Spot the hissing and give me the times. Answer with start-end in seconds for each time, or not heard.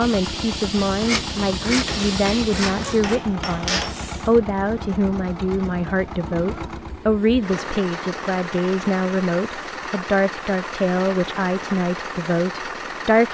0.0-4.3.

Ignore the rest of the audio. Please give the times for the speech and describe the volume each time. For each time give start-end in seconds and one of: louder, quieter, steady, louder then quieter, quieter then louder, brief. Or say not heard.
0.0-13.2 steady.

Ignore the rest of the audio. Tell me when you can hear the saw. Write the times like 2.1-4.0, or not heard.
0.8-3.2.